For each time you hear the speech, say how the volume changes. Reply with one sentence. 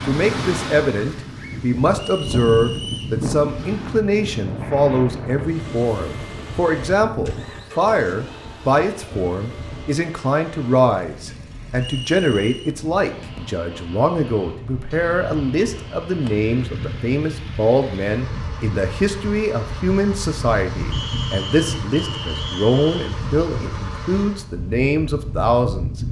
You can hear the speech from 0.0 to 25.9 s, at a steady volume.